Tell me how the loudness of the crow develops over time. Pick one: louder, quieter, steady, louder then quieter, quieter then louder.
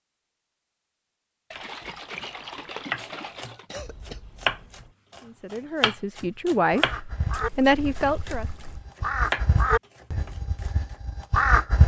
quieter then louder.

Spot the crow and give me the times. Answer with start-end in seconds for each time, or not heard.
6.7-11.8.